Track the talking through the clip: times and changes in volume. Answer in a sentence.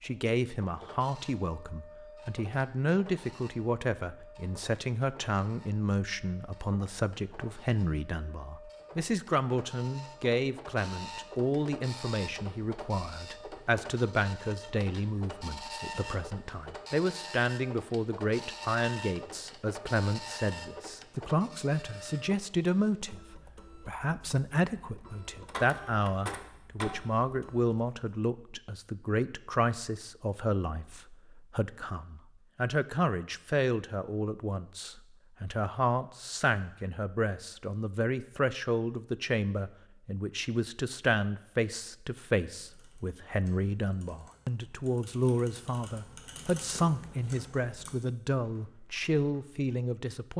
You can hear the talking from 0.0 to 50.3 s, at a steady volume.